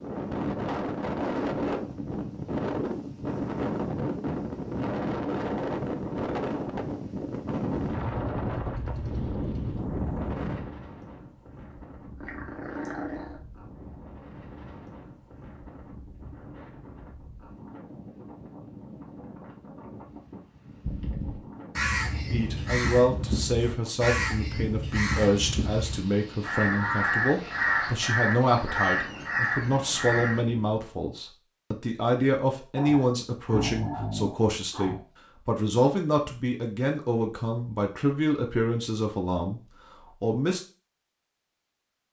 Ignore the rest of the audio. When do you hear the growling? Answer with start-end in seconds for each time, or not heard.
12.2-13.4, 32.8-35.0.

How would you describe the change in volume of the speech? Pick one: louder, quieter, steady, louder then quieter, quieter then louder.
steady.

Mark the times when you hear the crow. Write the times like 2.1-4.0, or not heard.
20.8-30.4.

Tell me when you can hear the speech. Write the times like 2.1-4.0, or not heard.
22.3-40.6.